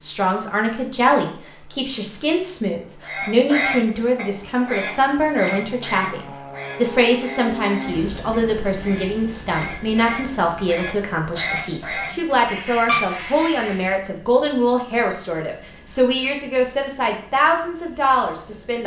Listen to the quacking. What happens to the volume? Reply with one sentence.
The volume of the quacking goes down, then up.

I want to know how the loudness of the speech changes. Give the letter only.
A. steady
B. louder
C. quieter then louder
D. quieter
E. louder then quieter
A.